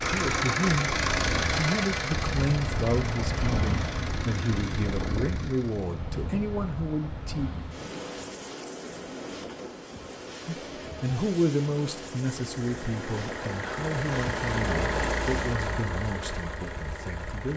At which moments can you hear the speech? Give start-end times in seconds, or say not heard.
0.1-0.9, 1.6-7.5, 10.4-17.5.